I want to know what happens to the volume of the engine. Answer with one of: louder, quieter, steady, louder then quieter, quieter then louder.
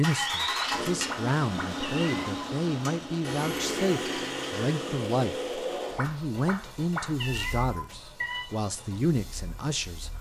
quieter.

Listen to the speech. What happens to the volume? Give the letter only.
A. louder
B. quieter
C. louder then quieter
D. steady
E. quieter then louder
D.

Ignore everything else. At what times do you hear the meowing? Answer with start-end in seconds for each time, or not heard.
0.6-2.2, 6.0-8.5.